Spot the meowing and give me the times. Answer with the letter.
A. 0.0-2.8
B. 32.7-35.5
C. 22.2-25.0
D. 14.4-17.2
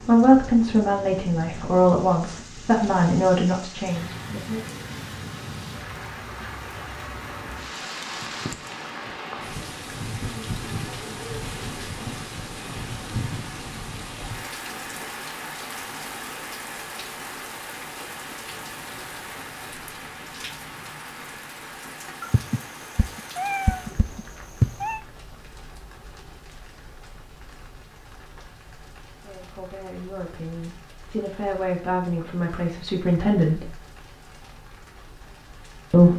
C.